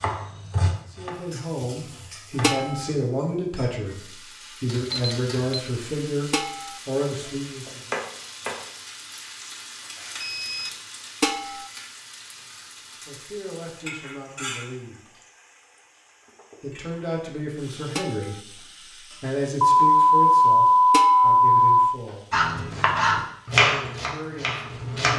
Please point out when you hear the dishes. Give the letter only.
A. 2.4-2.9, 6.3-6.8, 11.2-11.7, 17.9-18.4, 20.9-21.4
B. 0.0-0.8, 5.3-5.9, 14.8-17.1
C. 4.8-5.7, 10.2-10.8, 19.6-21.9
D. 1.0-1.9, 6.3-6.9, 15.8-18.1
A.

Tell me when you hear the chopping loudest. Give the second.
24 s.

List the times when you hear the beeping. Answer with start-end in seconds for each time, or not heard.
4.8-5.7, 10.2-10.8, 19.6-21.9.